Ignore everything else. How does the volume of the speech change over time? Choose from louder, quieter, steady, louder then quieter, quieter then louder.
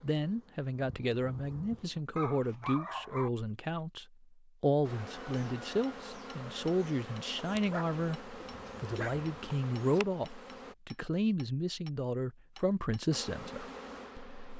steady.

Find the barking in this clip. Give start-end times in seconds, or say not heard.
2.1-3.3, 7.7-9.2.